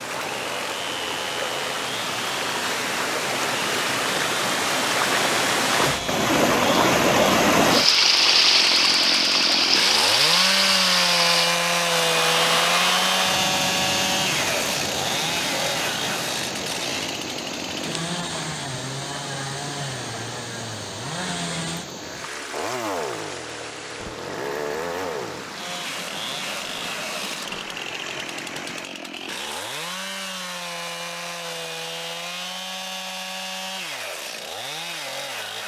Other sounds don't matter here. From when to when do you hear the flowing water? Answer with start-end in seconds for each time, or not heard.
0.0-28.9.